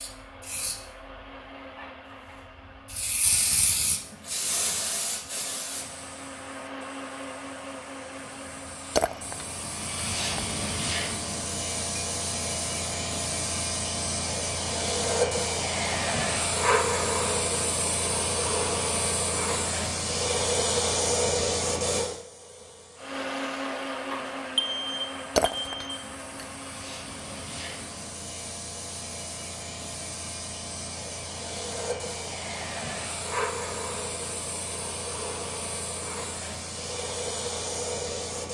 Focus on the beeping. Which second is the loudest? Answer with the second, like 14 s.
25 s.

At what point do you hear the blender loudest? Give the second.
24 s.